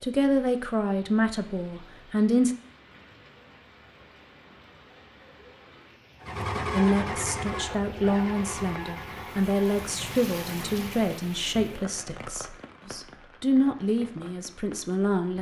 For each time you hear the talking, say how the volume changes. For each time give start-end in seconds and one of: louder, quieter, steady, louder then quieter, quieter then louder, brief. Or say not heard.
0.0-2.5 brief
6.7-15.3 quieter then louder.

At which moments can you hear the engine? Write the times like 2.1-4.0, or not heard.
6.2-11.1.